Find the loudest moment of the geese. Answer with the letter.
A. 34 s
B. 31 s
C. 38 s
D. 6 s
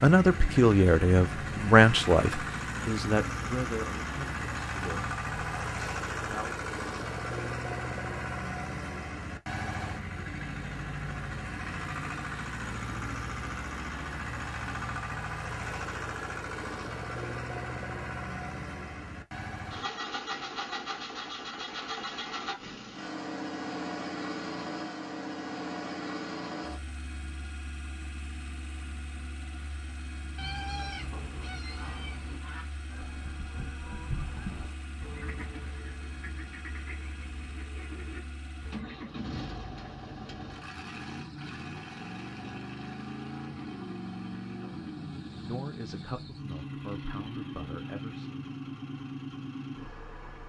A.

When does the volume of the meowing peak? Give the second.
31 s.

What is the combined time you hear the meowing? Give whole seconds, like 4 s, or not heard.
2 s.